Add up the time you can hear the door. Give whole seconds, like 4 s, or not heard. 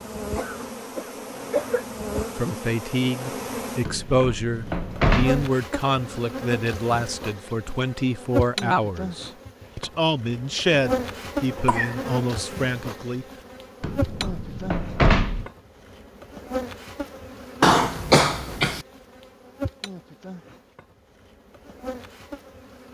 3 s.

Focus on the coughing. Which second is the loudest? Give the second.
18 s.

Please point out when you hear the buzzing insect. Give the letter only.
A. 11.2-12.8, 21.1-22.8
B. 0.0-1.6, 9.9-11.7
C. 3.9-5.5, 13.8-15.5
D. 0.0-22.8
D.